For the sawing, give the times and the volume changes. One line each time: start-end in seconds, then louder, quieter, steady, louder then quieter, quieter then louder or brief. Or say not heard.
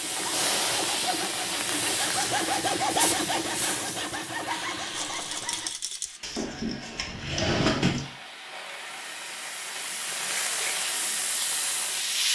0.0-5.7 louder then quieter.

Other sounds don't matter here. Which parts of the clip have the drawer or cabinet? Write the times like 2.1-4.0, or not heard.
6.2-8.1.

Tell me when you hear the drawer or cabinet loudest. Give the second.
8 s.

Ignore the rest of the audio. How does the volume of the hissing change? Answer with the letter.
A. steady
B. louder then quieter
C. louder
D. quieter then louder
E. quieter
D.